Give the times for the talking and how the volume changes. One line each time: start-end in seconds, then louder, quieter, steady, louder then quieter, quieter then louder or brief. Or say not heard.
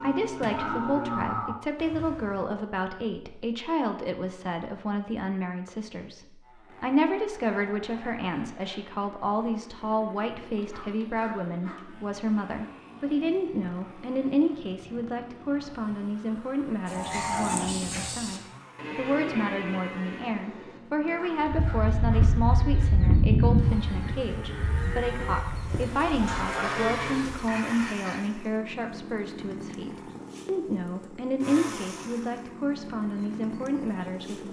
0.0-34.4 steady.